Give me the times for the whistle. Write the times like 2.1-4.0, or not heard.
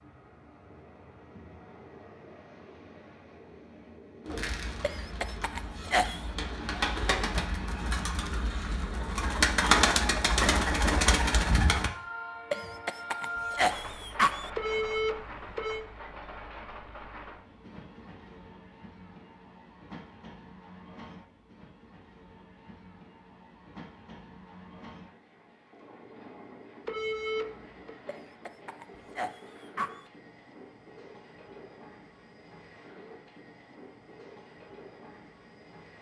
not heard.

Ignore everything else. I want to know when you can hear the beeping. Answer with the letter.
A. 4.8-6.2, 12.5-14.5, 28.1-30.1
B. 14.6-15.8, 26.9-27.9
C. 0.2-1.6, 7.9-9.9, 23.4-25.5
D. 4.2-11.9
B.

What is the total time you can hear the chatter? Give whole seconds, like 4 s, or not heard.
not heard.